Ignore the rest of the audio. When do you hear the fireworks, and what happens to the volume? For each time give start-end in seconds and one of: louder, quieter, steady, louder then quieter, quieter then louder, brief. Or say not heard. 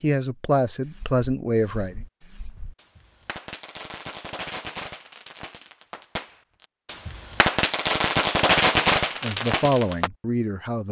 0.8-10.1 louder.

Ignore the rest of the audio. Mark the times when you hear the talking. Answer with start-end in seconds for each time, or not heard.
0.0-2.0, 9.2-10.8.